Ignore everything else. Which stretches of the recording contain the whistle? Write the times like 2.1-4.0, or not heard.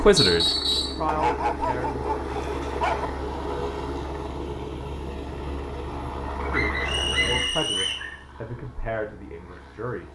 0.1-1.0, 6.8-8.1.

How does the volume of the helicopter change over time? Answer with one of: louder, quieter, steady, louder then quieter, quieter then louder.
quieter.